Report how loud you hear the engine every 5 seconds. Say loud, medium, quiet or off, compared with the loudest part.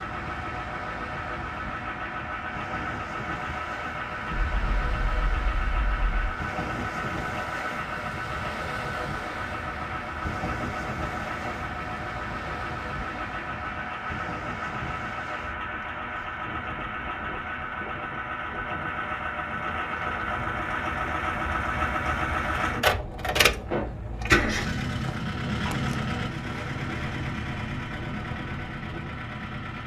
medium, medium, medium, medium, loud, medium.